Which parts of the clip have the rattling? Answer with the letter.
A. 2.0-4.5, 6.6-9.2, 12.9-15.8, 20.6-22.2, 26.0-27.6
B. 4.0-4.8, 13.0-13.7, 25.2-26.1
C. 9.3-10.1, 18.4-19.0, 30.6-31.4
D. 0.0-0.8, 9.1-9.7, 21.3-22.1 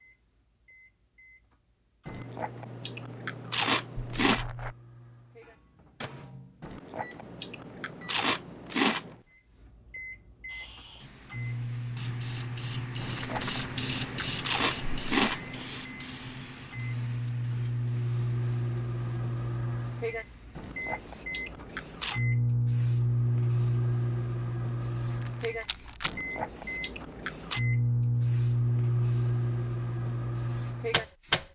B.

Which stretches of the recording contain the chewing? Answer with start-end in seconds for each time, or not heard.
2.0-4.5, 6.6-9.2, 12.9-15.8, 20.6-22.2, 26.0-27.6.